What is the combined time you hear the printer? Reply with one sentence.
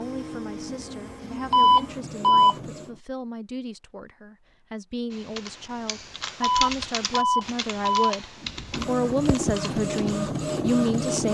The printer can be heard for 6 seconds in total.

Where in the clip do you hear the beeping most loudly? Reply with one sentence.
The volume of the beeping peaks at 2 seconds.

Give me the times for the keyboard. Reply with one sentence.
You can hear the keyboard from 5.1 to 10.2 s.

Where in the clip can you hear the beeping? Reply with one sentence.
The beeping can be heard from 1.5 to 2.5 s and from 6.4 to 8.1 s.